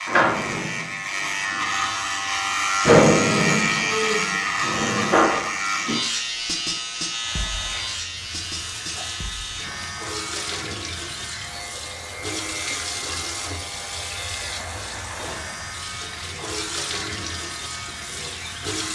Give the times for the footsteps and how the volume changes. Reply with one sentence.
The footsteps can't be heard in this clip.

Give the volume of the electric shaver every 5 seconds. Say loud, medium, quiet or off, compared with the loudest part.
loud, medium, quiet, quiet.